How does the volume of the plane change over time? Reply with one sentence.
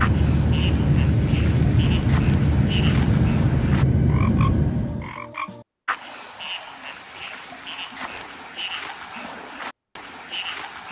The volume of the plane stays about the same.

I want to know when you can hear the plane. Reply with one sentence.
You can hear the plane from 0.0 to 5.2 s.